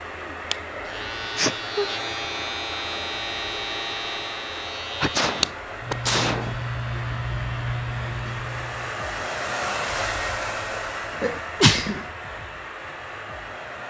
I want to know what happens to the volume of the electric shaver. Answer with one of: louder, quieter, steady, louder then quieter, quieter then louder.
steady.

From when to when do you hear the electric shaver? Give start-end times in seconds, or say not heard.
0.0-9.1.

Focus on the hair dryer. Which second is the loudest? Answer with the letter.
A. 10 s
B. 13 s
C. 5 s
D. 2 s
A.